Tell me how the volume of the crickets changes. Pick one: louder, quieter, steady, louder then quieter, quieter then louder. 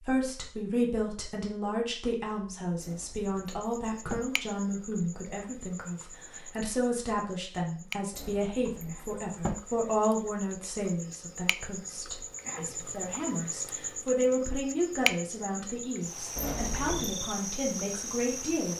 louder.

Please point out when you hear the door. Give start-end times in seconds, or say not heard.
2.8-4.2, 8.1-9.6, 16.4-17.1.